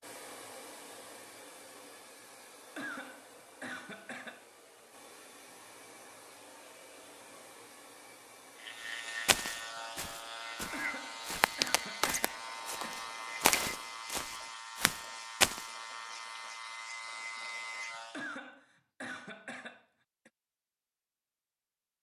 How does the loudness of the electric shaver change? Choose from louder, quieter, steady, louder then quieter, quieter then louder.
steady.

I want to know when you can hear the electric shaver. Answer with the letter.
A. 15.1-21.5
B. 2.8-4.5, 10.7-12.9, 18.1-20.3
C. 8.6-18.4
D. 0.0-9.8
C.